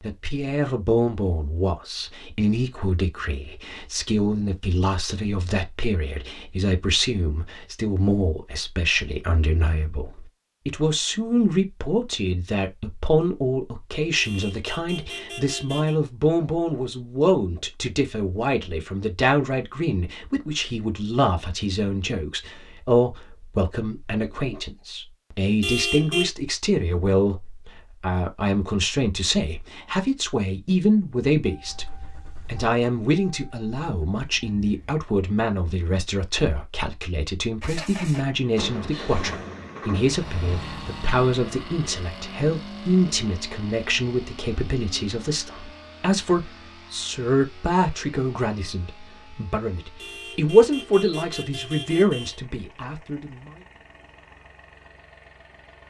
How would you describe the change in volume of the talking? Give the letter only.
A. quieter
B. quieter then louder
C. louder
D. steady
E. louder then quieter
D.